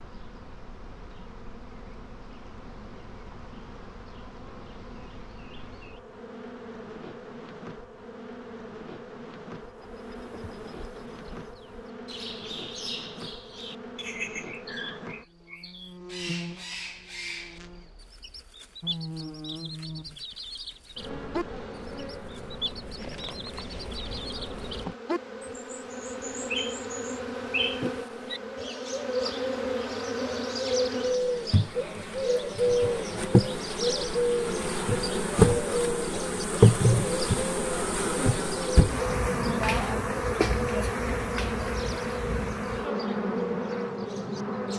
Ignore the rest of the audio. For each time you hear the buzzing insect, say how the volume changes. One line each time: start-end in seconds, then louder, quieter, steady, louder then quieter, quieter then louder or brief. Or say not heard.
0.0-44.7 louder.